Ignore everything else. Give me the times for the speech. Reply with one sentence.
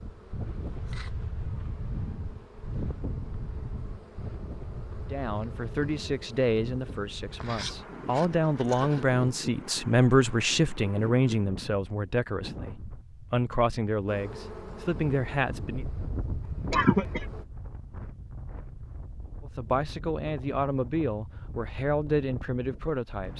You can hear the speech from 5.1 to 15.8 s and from 19.4 to 23.3 s.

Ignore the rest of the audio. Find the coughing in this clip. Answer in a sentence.
You can hear the coughing from 16.4 to 17.2 s.